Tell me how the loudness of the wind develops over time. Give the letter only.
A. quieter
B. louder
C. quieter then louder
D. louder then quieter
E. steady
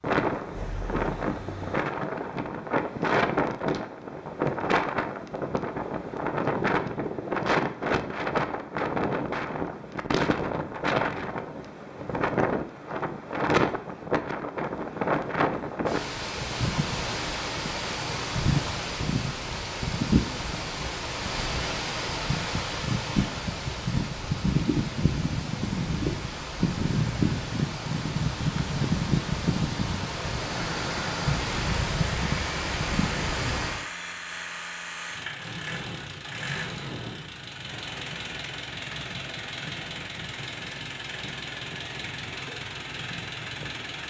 E.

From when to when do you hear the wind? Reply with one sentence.
The wind can be heard from 0.0 to 33.9 s.